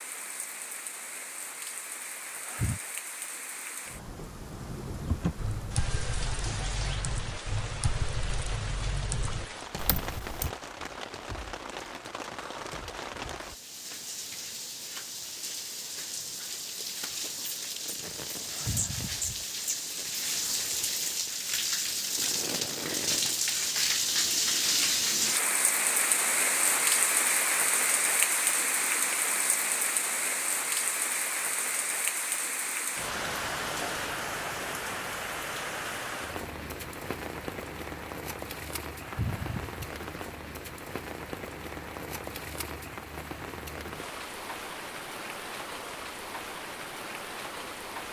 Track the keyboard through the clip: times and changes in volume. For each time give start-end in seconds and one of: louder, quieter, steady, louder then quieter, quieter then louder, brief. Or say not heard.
5.1-10.6 steady.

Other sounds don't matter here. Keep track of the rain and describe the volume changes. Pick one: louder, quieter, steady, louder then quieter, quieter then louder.
louder then quieter.